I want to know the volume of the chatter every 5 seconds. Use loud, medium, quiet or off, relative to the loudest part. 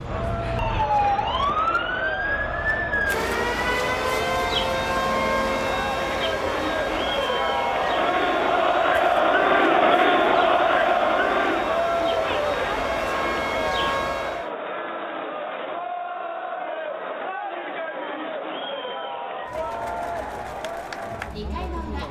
medium, loud, loud, medium, medium.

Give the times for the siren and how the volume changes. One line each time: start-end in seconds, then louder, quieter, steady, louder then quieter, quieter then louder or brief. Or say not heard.
0.0-14.5 quieter then louder.